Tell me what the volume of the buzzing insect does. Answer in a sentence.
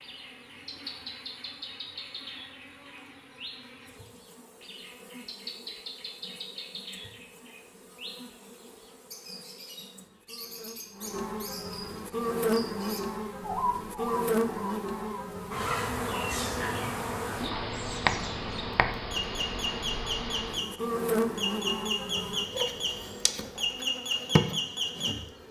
The volume of the buzzing insect goes up.